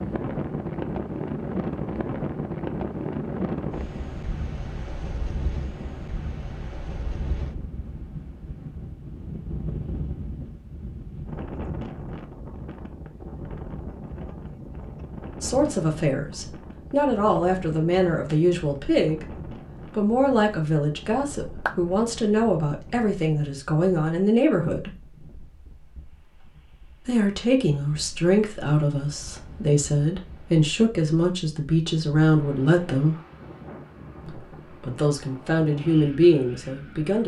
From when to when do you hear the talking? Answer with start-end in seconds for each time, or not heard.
15.4-24.9, 27.1-33.1, 34.2-37.2.